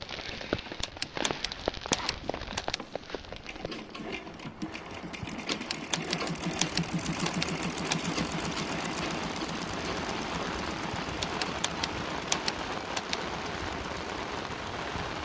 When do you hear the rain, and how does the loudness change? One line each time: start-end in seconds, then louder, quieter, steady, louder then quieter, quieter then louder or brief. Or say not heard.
0.0-15.1 quieter then louder.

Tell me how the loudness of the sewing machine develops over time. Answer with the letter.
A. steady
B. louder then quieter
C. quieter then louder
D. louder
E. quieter
B.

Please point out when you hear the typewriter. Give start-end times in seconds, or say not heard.
0.5-2.8, 5.2-8.0, 10.9-13.2.